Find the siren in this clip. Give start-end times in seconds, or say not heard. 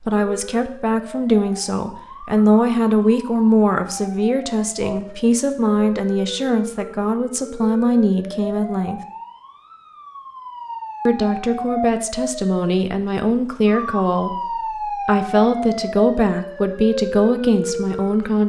0.1-18.4.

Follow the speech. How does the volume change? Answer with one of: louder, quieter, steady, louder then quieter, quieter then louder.
steady.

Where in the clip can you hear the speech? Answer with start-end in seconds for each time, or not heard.
0.0-9.0, 11.1-18.4.